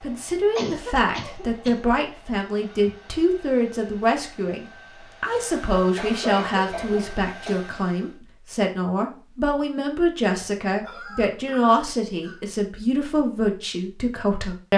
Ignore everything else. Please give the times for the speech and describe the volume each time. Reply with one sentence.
The speech can be heard from 0.0 to 14.7 s, at a steady volume.